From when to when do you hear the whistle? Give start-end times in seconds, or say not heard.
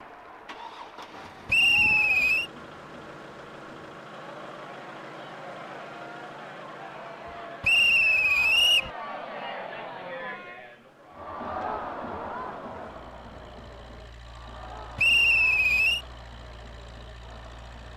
1.4-2.5, 7.6-8.9, 14.9-16.0.